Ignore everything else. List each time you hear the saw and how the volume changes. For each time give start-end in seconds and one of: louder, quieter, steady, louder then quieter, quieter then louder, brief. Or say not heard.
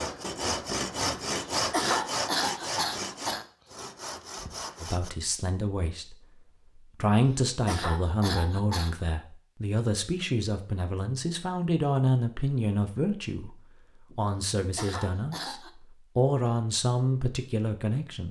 0.0-5.1 quieter.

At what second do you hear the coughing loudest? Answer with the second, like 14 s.
2 s.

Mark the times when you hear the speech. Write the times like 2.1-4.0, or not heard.
4.8-18.2.